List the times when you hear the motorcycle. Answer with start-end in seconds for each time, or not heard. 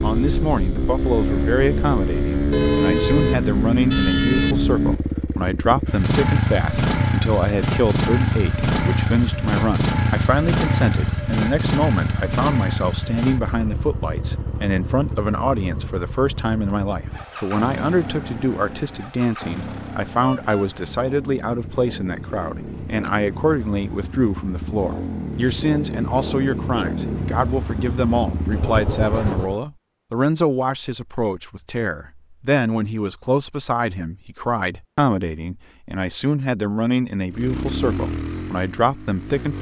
0.0-29.6, 37.3-39.5.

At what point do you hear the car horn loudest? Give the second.
3 s.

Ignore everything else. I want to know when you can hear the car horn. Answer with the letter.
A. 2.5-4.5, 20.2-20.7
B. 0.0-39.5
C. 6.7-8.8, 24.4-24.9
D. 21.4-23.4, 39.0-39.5
A.